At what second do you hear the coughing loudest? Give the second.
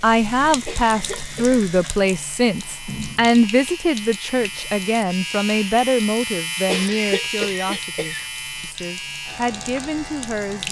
7 s.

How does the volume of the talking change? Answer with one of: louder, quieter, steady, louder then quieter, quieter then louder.
quieter.